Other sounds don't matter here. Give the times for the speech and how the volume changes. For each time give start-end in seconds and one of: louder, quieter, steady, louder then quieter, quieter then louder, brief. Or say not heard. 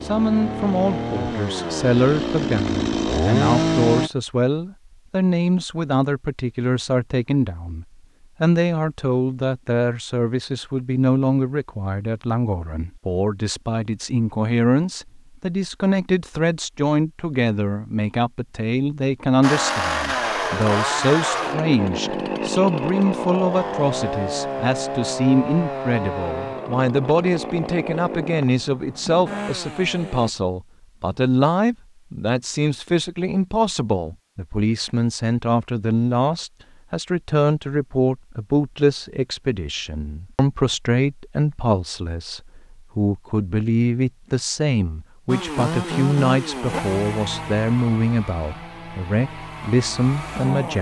0.0-50.7 steady.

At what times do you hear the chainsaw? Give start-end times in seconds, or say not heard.
0.0-4.1, 19.4-30.3, 45.2-50.7.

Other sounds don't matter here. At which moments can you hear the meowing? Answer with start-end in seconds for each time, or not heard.
not heard.